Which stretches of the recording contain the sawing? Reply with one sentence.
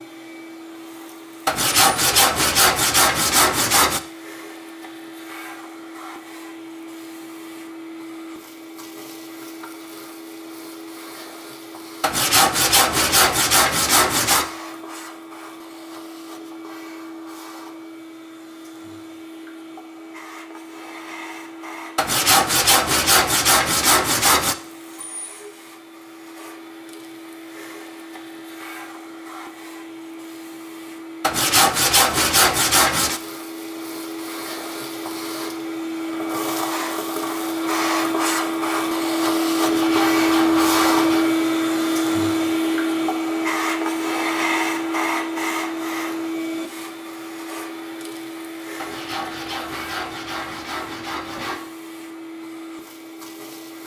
The sawing can be heard from 1.4 to 4.0 s, from 12.0 to 14.5 s, from 21.9 to 24.6 s, from 31.2 to 33.2 s, from 39.6 to 41.3 s and from 48.8 to 51.6 s.